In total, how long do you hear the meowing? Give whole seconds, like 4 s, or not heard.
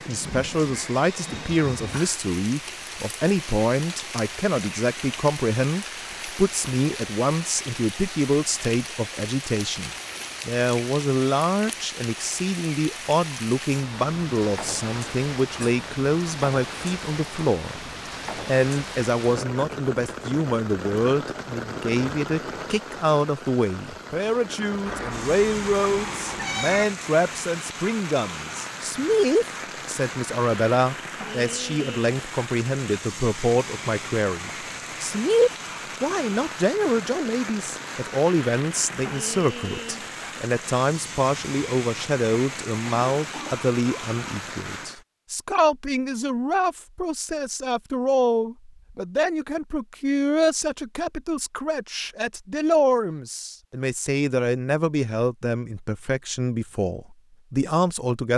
2 s.